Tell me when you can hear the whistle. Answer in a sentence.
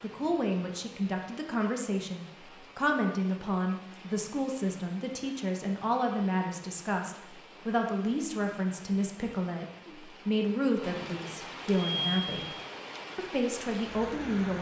You can't hear the whistle here.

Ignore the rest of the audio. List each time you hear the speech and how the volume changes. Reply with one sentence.
The speech can be heard from 0.0 to 12.4 s, at a steady volume; and briefly from 13.2 to 14.5 s.